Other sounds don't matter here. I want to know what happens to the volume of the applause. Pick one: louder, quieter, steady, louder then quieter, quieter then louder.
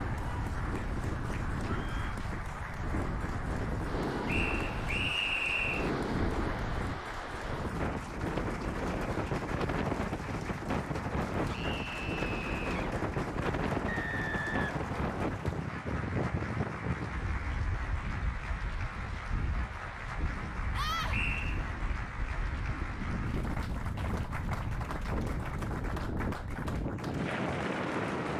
steady.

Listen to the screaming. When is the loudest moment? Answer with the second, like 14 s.
21 s.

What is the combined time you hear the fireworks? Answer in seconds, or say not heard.
not heard.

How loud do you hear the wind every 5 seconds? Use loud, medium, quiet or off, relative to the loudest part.
loud, loud, loud, loud, medium, loud.